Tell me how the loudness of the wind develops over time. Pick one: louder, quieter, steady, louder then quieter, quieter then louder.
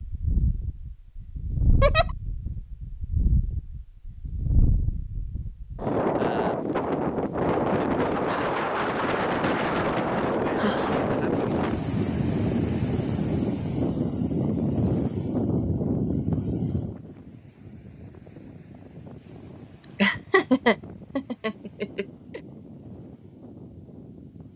louder then quieter.